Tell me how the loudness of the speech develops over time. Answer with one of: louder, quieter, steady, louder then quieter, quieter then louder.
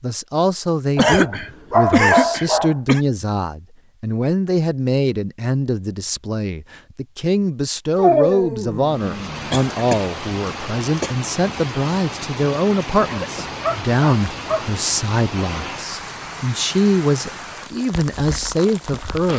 steady.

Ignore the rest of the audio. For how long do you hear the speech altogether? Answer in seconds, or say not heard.
19 s.